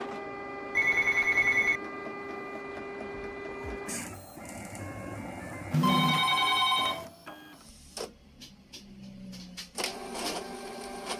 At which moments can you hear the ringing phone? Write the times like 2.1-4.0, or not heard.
0.8-1.8, 5.7-7.0.